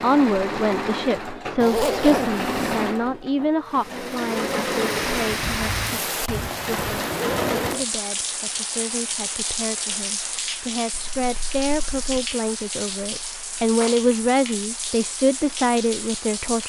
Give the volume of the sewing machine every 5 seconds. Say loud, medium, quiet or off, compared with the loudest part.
loud, loud, off, off.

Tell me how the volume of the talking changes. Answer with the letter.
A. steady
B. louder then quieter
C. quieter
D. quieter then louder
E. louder
D.